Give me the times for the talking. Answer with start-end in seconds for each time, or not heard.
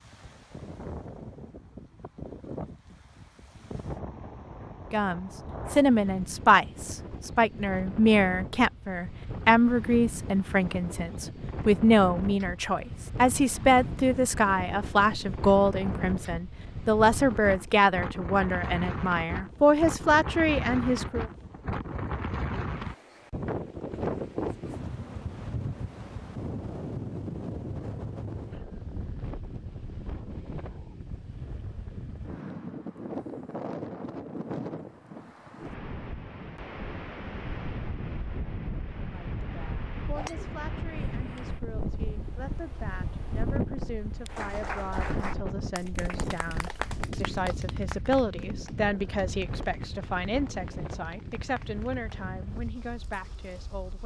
4.9-21.2, 39.1-54.0.